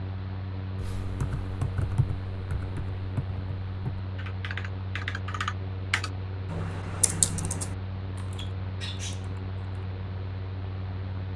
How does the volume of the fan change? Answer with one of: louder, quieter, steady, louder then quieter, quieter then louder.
steady.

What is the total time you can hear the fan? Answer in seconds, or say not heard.
11 s.